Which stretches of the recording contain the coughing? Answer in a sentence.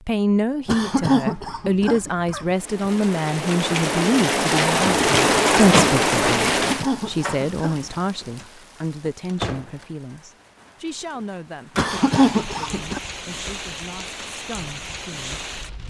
You can hear the coughing from 0.7 to 2.5 s, from 6.5 to 7.9 s and from 11.8 to 13.0 s.